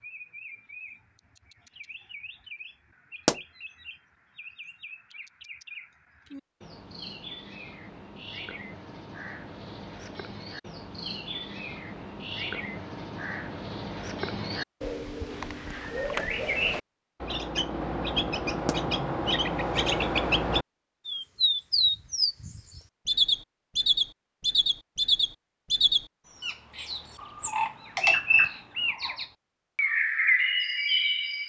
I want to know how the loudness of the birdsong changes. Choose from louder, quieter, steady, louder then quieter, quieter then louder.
louder.